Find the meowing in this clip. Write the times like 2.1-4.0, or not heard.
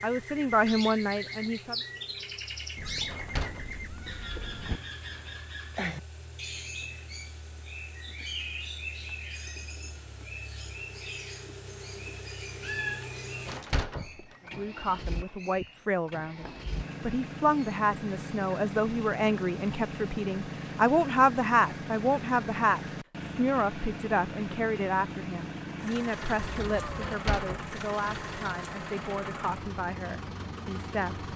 2.8-4.8, 12.6-13.8, 26.4-27.1.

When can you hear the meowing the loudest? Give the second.
13 s.